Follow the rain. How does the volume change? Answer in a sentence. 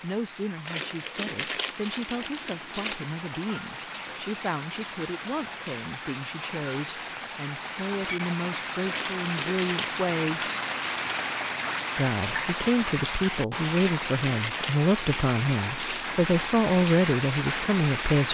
The volume of the rain goes up.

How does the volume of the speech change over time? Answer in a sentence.
The loudness of the speech goes up.